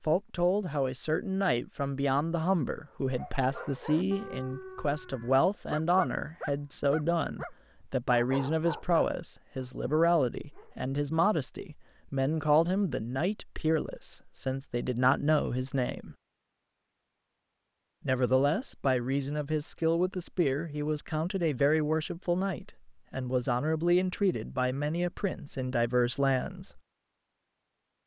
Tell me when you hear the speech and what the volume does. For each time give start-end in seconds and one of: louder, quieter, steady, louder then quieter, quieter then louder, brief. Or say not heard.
0.0-16.1 steady
18.1-26.8 steady.